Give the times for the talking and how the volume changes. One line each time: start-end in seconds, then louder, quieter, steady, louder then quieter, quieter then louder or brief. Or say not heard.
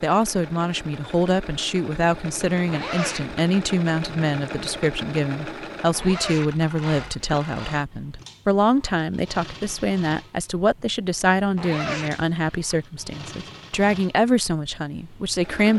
0.0-15.7 steady.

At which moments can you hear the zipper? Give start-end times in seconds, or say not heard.
2.6-3.4, 5.9-7.4, 11.6-12.7.